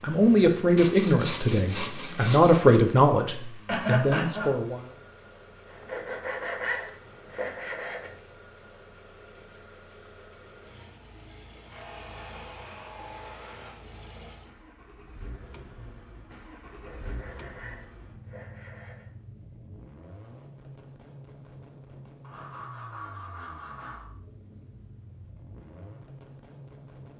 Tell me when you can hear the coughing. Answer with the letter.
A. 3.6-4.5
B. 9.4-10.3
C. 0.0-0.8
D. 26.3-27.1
A.